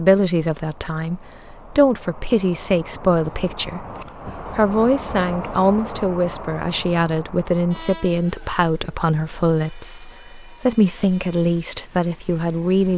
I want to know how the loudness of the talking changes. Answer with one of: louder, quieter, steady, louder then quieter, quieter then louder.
steady.